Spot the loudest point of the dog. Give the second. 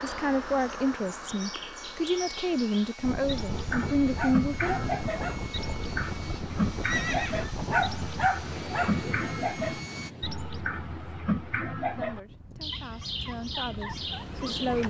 8 s.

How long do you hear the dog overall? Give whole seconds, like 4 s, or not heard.
3 s.